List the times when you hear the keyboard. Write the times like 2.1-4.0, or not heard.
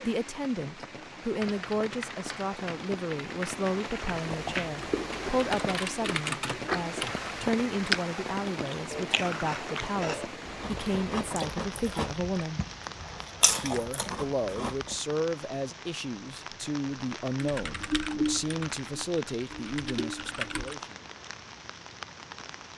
1.4-7.3, 17.4-20.8.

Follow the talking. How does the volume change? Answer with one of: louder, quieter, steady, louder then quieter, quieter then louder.
steady.